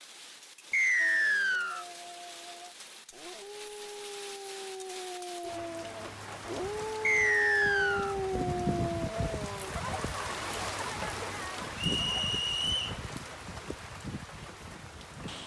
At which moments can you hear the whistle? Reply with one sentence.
The whistle can be heard from 0.7 to 1.9 s, from 7.0 to 8.2 s and from 11.8 to 12.9 s.